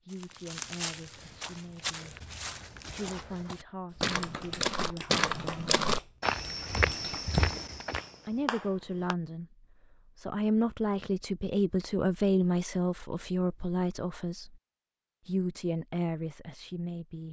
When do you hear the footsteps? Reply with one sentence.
The footsteps can be heard from 0.1 to 8.1 s.